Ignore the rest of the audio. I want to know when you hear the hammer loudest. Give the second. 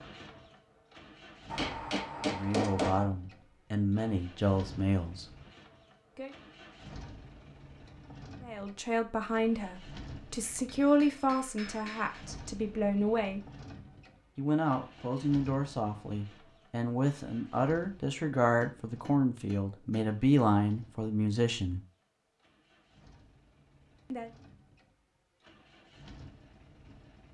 3 s.